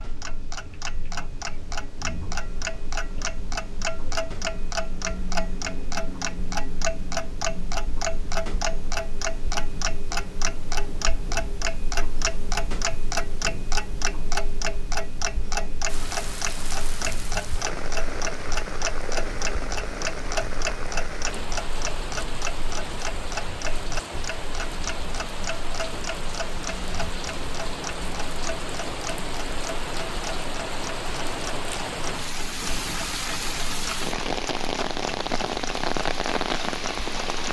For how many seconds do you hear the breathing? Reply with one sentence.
The breathing can't be heard in this clip.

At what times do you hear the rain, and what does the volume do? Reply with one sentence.
You can hear the rain from 15.8 to 37.4 s, getting louder.